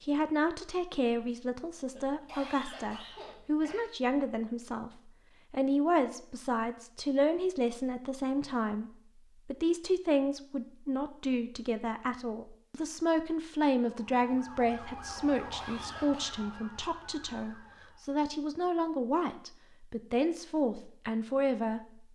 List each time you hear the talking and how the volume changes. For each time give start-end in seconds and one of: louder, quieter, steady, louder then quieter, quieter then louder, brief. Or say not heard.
0.0-22.1 steady.